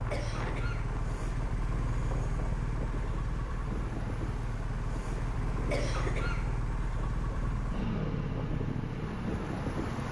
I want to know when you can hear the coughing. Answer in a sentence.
You can hear the coughing from 0.1 to 0.8 s and from 5.7 to 6.5 s.